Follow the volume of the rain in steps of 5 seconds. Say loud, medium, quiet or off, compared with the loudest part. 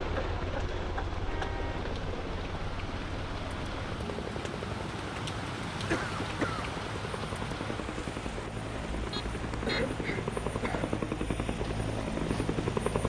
loud, loud, medium.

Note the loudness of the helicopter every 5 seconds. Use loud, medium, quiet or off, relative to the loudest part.
medium, medium, loud.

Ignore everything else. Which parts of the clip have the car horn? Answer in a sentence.
The car horn can be heard from 1.2 to 1.9 s and from 9.1 to 9.8 s.